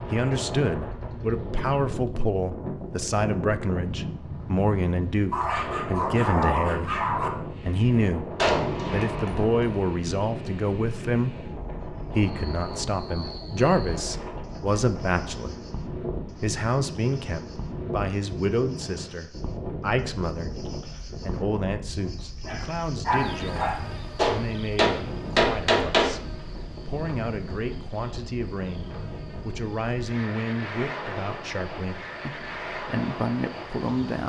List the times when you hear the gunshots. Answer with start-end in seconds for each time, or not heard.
8.3-9.8, 24.1-26.1.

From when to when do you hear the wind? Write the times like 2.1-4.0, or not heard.
0.0-34.2.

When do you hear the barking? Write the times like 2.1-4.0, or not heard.
5.3-7.3, 22.4-23.9.